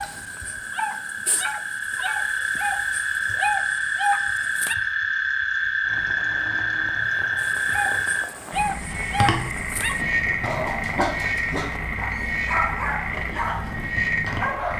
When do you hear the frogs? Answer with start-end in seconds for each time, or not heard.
0.0-14.7.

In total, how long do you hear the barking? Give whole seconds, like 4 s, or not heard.
12 s.